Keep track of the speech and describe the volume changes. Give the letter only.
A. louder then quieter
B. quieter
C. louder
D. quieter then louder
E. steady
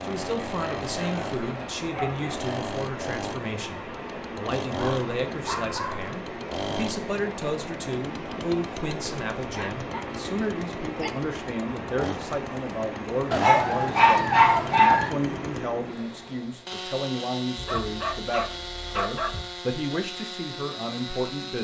E.